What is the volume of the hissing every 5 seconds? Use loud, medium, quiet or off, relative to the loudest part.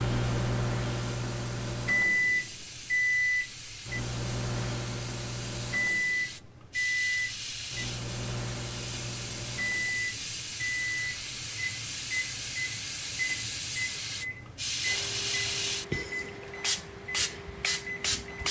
medium, medium, loud, loud.